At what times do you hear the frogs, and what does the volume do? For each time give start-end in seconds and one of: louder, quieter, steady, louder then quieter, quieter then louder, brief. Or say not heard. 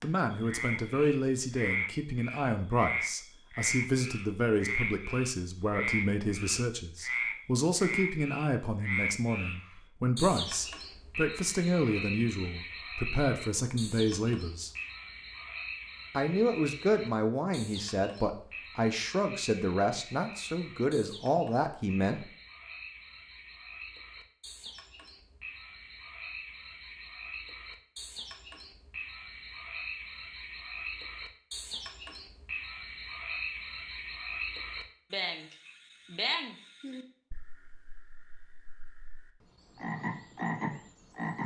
0.0-41.4 quieter then louder.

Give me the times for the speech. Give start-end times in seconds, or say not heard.
0.0-14.7, 16.1-22.2.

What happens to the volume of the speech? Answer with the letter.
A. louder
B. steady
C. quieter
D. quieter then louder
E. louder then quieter
B.